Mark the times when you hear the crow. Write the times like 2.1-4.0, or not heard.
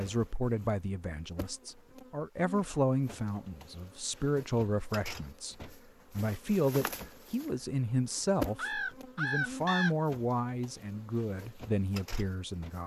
8.3-9.9.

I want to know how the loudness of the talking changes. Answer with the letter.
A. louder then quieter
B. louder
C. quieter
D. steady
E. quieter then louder
D.